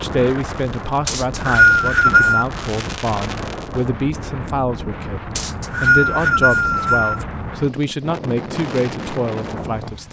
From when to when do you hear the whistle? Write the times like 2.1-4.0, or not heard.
1.1-2.5, 5.3-7.2.